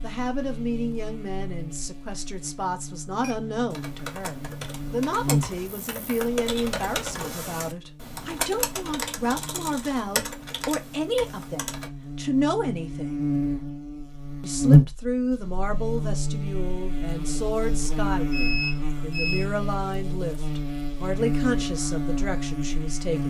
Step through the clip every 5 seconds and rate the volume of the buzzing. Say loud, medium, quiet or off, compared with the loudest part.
quiet, medium, loud, medium, medium.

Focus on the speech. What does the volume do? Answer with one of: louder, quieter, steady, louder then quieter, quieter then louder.
steady.